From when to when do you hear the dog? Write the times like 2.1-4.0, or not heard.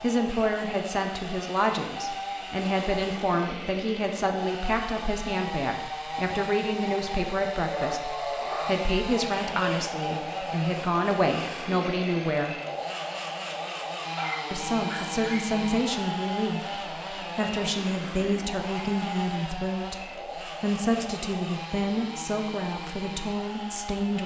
7.7-9.9, 13.9-15.4.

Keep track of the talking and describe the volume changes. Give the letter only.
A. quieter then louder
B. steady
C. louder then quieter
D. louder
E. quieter
B.